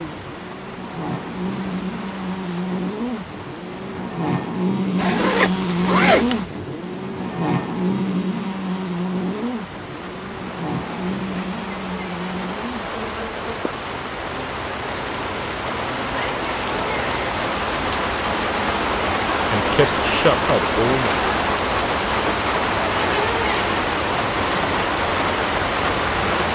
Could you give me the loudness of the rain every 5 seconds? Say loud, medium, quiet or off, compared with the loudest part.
quiet, quiet, medium, loud, loud, loud.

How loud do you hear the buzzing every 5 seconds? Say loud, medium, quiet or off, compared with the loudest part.
loud, loud, medium, quiet, off, off.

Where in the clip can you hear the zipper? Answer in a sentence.
The zipper can be heard from 5.0 to 6.5 s.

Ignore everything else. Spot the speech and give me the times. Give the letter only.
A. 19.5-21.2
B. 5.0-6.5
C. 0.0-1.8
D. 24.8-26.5
A.